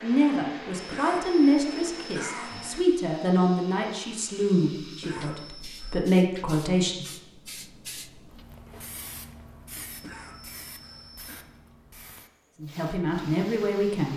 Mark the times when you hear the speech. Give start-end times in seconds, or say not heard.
0.0-7.0, 12.6-14.1.